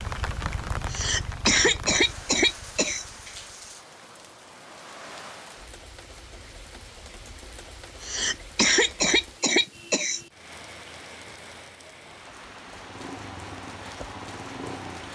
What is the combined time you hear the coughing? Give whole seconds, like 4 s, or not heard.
4 s.